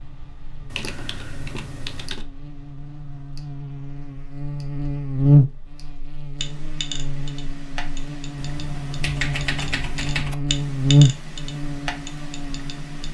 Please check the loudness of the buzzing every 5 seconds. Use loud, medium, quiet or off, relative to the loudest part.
quiet, loud, loud.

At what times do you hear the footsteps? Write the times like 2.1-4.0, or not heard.
not heard.